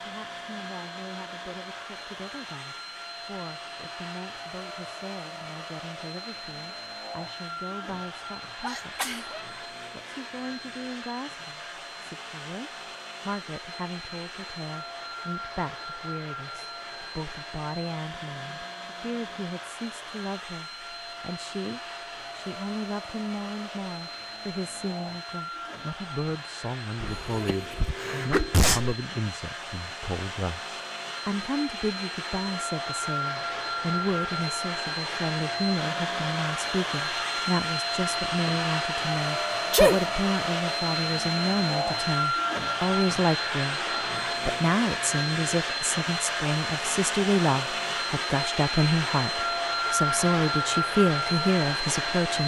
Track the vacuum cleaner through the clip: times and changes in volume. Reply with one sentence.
You can hear the vacuum cleaner from 0.0 to 52.4 s, getting louder.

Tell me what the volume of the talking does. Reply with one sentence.
The volume of the talking goes up.